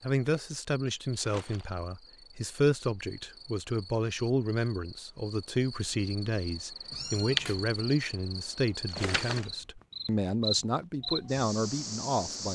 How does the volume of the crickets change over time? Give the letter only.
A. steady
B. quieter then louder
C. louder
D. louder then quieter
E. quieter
C.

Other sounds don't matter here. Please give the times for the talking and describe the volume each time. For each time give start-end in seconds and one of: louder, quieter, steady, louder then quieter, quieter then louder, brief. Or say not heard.
0.0-12.4 steady.